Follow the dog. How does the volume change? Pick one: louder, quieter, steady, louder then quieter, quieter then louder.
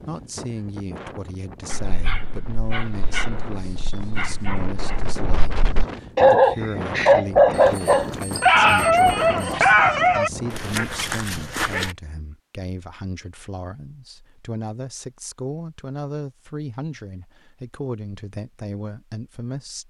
louder then quieter.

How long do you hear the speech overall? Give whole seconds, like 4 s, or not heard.
20 s.